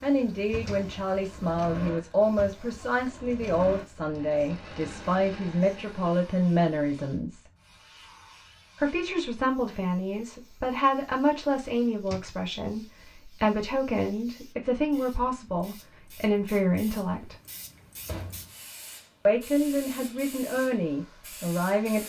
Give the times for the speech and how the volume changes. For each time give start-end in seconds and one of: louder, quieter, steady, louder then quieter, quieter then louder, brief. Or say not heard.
0.0-7.5 steady
8.8-17.4 steady
19.2-22.0 brief.